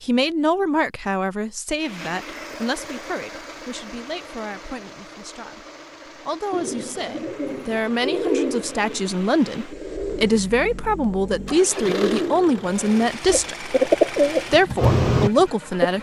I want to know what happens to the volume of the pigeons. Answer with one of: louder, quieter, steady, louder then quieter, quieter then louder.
quieter then louder.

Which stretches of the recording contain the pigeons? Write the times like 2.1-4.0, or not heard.
6.5-15.9.